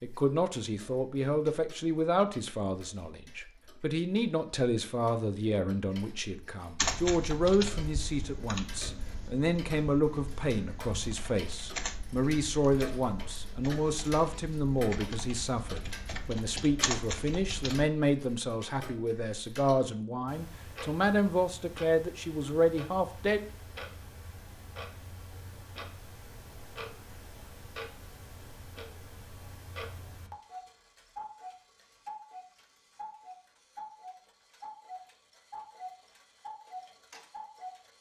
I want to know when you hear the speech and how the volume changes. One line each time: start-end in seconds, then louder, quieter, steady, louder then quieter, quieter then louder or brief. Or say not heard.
0.0-23.4 steady.